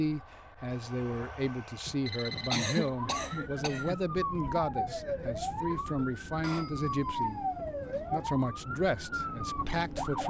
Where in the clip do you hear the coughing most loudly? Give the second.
3 s.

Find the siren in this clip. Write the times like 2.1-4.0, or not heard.
3.0-10.2.